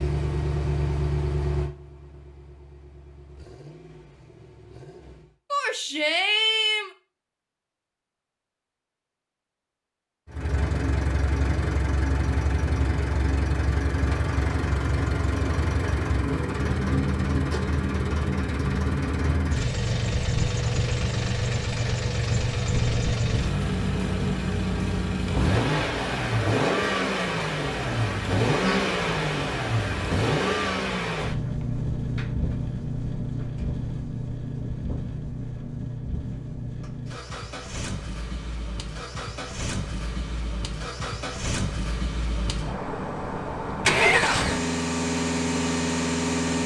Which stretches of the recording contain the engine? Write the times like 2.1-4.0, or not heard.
0.0-5.3, 10.2-46.6.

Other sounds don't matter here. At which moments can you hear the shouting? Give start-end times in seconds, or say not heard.
5.5-6.9, 43.9-44.5.